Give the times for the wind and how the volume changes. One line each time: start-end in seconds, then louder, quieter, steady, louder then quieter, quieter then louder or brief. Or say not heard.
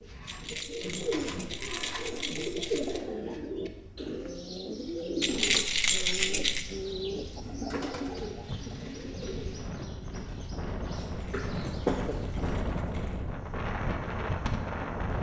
0.0-15.1 louder.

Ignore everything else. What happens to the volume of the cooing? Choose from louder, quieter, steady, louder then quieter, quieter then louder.
quieter.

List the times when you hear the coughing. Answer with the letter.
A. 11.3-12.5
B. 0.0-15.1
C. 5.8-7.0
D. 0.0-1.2
A.